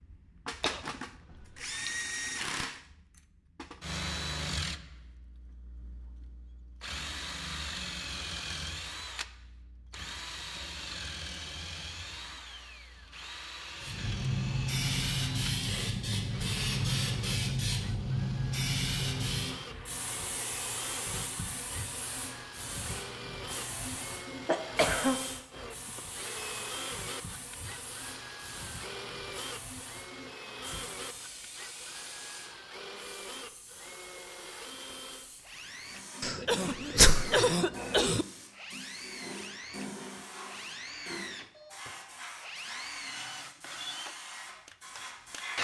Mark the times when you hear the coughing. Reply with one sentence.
The coughing can be heard from 0.6 to 1.9 s, from 23.5 to 25.2 s and from 36.2 to 38.2 s.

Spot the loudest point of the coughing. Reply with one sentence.
The loudest moment of the coughing is at 37 seconds.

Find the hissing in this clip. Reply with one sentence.
You can hear the hissing from 13.8 to 45.6 s.